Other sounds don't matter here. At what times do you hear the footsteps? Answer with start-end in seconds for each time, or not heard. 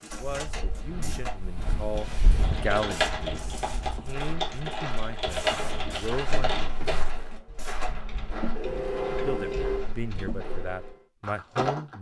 0.1-11.9.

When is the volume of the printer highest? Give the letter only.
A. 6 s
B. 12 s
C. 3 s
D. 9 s
D.